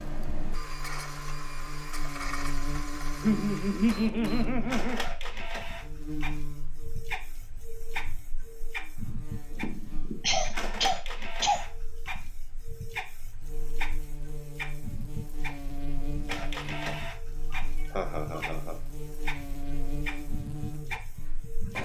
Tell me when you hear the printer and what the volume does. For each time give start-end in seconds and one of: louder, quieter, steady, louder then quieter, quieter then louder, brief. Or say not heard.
0.0-21.7 steady.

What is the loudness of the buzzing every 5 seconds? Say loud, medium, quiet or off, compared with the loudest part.
loud, medium, medium, loud, loud.